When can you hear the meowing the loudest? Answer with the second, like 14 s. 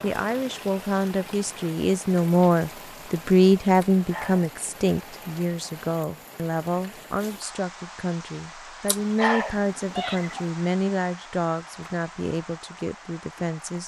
9 s.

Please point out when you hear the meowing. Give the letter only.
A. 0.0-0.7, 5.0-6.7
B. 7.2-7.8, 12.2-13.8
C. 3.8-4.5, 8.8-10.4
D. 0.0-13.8
C.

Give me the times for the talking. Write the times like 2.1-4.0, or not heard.
0.0-13.8.